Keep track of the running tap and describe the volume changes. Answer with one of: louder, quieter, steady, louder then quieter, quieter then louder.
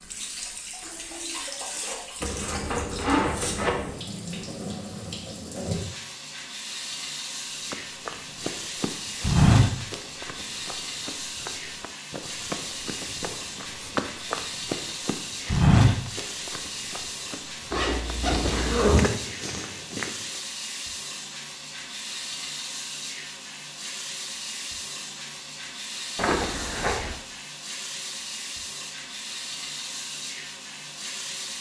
steady.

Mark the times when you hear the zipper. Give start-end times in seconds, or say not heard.
2.2-4.0, 17.7-19.1, 26.1-27.1.